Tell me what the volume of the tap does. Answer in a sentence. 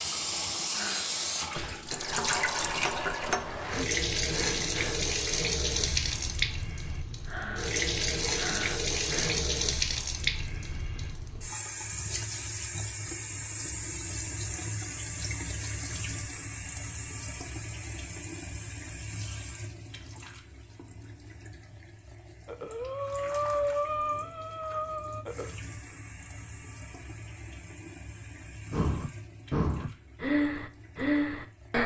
The loudness of the tap goes down.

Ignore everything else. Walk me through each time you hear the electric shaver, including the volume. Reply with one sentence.
The electric shaver can't be heard in this clip.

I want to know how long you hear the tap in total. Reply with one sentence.
The tap can be heard for 32 seconds in total.